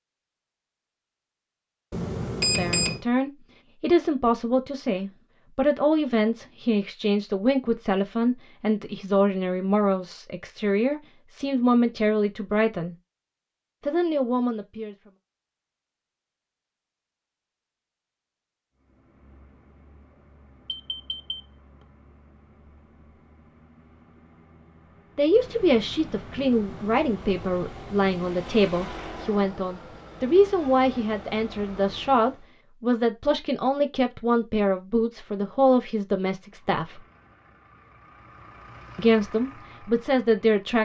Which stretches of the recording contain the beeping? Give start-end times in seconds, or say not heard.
1.9-3.0, 20.6-21.4.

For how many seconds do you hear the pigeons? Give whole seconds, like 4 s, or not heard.
not heard.